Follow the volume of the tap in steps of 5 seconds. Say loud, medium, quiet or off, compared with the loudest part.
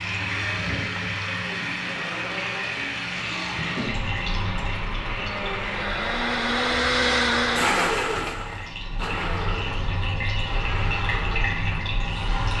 loud, medium, loud.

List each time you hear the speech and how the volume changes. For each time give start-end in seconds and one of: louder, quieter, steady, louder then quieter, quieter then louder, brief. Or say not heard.
not heard.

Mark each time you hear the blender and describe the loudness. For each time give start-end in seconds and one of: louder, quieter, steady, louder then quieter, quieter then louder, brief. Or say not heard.
0.0-12.5 louder then quieter.